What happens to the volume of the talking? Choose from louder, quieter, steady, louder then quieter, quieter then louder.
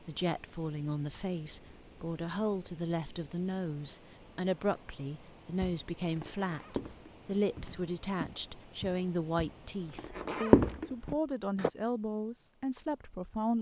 steady.